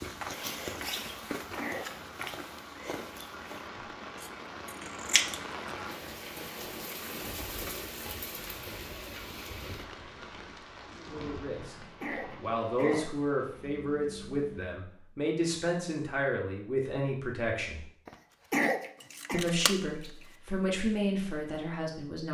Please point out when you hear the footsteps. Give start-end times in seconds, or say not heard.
0.0-4.0.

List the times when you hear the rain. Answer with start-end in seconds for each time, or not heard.
0.0-14.8.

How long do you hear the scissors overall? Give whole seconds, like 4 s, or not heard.
2 s.